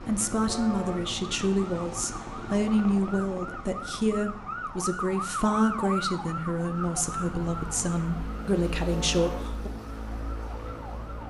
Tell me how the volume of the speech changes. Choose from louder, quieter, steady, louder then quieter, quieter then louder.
steady.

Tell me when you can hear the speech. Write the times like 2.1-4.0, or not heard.
0.1-9.7.